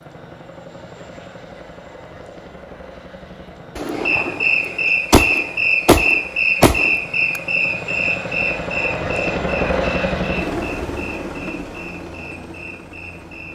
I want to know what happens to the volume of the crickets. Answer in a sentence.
The volume of the crickets goes down.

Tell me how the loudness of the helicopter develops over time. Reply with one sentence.
The volume of the helicopter goes up, then down.